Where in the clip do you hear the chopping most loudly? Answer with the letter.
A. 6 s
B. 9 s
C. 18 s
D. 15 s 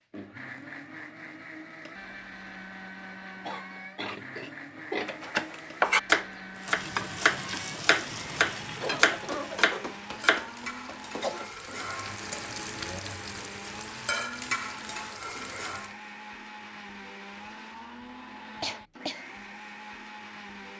A.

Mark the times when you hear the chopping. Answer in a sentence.
The chopping can be heard from 5.0 to 10.5 s.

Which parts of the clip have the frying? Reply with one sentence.
You can hear the frying from 6.5 to 15.9 s.